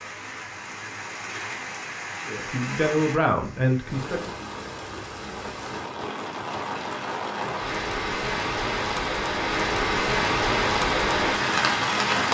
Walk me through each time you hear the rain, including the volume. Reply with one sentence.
The rain can be heard from 0.0 to 12.3 s, getting louder.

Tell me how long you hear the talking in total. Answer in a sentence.
You can hear the talking for 2 seconds altogether.